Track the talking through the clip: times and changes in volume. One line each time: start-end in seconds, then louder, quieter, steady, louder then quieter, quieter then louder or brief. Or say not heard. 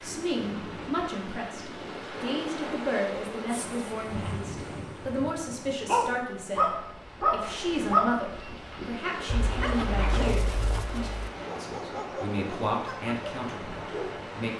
0.0-14.5 steady.